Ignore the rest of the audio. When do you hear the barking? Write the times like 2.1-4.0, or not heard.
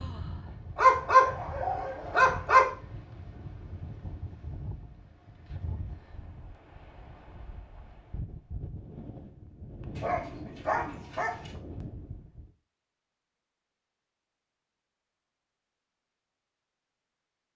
0.8-2.6, 9.9-11.6.